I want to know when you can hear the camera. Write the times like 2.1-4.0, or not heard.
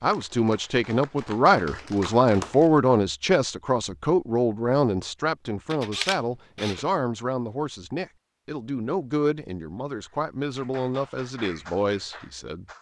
5.7-6.8.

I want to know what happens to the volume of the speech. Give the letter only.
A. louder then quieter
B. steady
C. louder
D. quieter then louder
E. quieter
E.